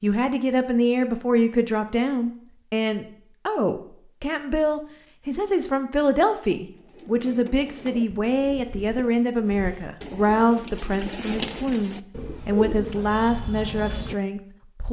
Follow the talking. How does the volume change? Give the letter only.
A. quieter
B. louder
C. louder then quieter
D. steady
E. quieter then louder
D.